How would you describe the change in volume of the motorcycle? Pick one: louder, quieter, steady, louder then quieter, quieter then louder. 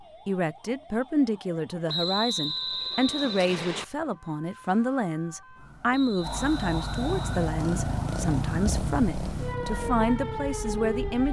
quieter.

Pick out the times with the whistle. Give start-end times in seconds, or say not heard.
1.9-3.9, 5.9-7.5.